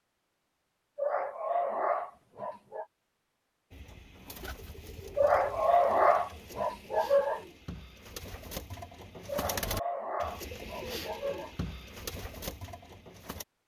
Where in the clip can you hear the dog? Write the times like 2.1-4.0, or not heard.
0.9-2.9, 5.2-7.4, 9.2-11.7.